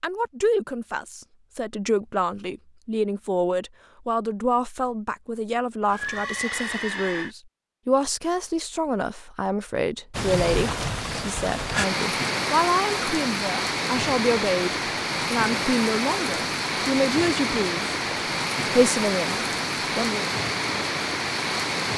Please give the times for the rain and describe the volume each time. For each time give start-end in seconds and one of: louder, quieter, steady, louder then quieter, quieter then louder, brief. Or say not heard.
10.1-21.9 steady.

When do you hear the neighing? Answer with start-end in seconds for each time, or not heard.
5.8-7.3.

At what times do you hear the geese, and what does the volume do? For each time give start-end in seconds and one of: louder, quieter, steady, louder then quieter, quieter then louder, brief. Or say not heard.
not heard.